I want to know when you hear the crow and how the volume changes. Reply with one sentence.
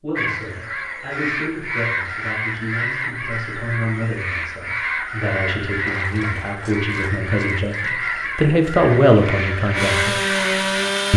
The crow can be heard from 0.1 to 10.8 s, at a steady volume.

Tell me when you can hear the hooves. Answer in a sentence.
The hooves can't be heard in this clip.